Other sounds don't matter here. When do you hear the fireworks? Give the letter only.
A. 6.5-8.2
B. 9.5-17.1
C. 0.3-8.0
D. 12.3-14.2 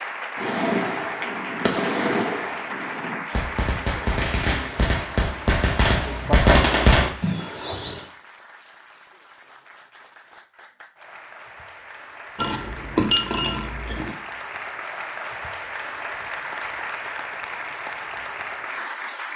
C.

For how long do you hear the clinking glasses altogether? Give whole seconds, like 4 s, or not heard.
2 s.